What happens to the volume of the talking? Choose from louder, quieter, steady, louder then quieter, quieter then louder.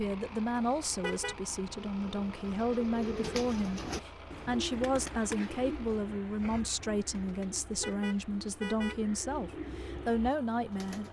steady.